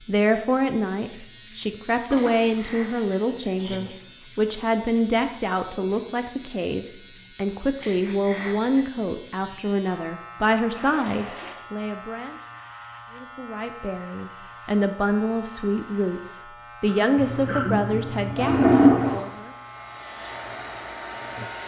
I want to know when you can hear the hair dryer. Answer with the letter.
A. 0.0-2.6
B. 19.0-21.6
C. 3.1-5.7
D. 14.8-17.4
B.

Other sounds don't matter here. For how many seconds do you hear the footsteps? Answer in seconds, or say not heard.
not heard.